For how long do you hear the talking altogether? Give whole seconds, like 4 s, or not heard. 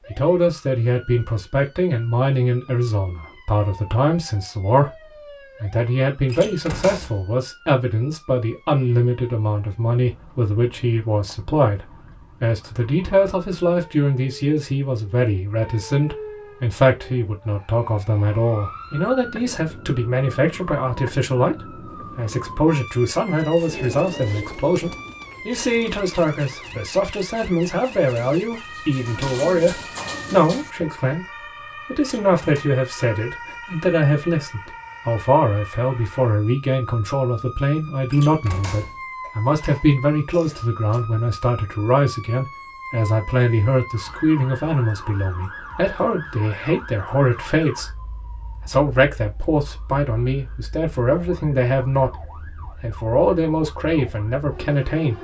54 s.